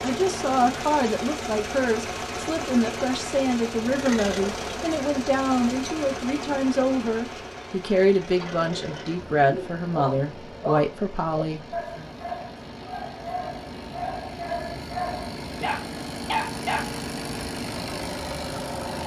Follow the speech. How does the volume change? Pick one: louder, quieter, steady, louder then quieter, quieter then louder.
steady.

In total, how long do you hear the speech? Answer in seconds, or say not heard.
12 s.